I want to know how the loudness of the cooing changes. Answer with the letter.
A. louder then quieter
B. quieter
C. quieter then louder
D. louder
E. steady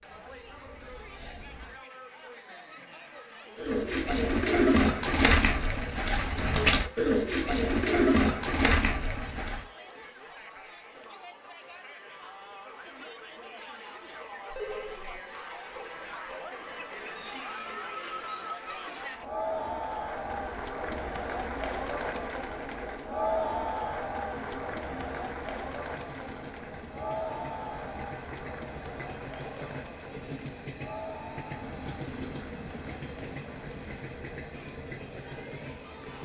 E.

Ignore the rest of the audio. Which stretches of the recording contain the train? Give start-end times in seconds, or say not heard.
0.1-1.8, 20.4-36.1.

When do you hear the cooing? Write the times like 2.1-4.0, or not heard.
3.5-9.7.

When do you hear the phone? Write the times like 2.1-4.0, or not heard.
14.5-15.2.